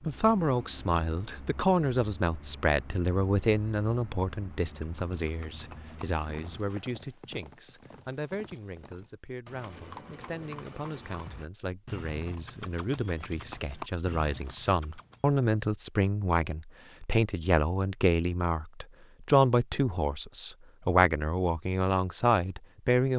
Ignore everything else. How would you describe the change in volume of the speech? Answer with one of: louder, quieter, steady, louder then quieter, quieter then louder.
quieter then louder.